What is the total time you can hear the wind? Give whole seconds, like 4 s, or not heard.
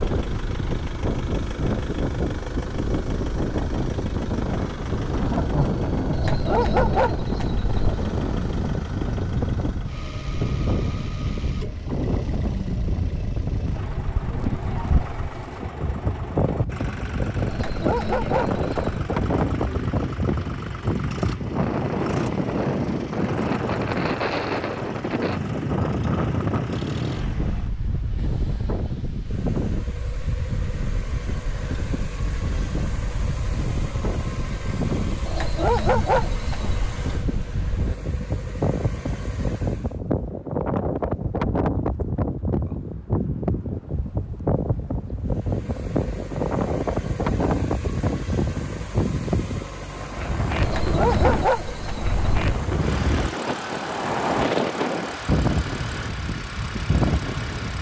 58 s.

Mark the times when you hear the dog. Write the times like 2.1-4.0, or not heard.
6.1-8.0, 17.4-19.0, 35.2-37.0, 50.6-52.4.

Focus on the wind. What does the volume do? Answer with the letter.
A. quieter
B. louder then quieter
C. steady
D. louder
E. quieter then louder
C.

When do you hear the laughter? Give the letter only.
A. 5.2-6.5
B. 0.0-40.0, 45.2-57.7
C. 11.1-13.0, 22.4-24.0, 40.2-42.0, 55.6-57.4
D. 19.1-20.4
A.